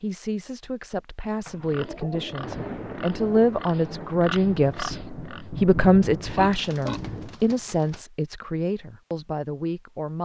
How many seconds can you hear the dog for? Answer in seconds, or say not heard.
not heard.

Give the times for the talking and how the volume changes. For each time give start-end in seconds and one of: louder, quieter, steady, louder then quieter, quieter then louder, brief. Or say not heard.
0.0-10.2 louder then quieter.